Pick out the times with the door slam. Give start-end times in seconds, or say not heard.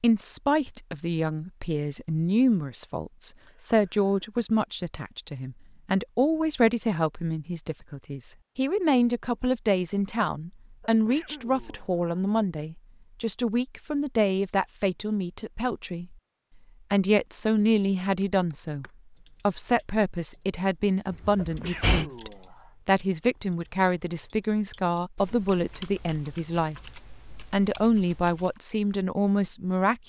21.1-22.1.